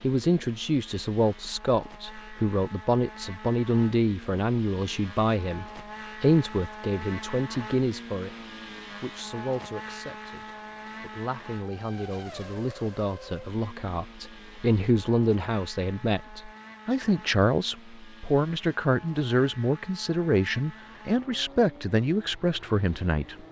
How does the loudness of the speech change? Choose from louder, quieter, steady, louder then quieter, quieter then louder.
quieter then louder.